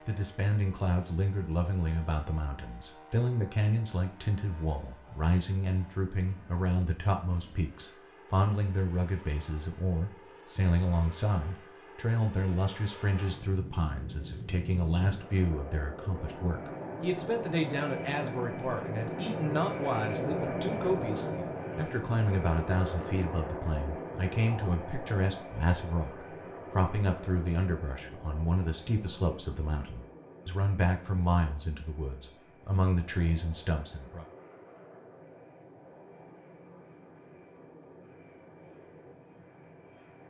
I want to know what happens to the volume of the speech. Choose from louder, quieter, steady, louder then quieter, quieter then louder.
steady.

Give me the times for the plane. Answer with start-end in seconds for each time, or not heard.
0.0-40.2.